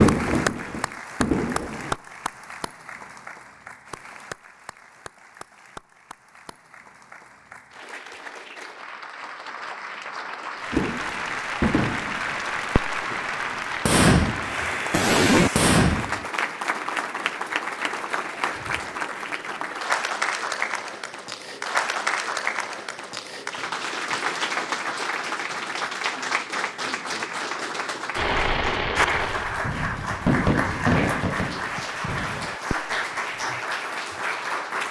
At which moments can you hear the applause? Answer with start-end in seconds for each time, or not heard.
0.0-34.8.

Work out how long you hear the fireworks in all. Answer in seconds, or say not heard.
12 s.